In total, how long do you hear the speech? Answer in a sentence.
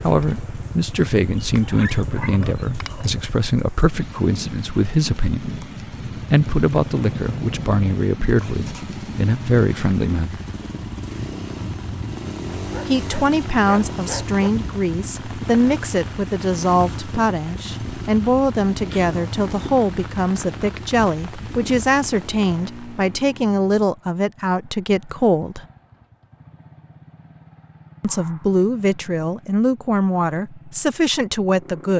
The speech can be heard for 27 seconds in total.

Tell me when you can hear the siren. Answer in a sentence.
You can't hear the siren here.